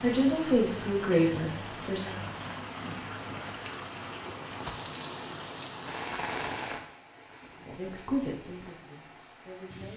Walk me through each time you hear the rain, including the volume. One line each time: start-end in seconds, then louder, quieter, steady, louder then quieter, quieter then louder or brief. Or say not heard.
0.0-9.9 quieter.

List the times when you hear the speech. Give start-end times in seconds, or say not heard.
0.0-2.1, 7.5-9.9.